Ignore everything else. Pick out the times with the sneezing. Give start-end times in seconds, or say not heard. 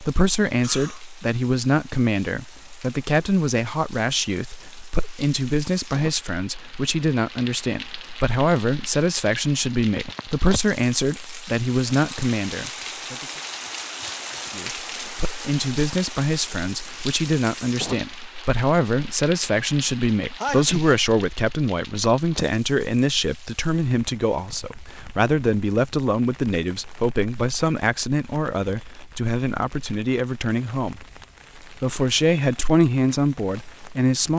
0.6-1.1, 20.4-20.9.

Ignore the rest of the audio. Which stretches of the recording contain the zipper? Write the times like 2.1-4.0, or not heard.
not heard.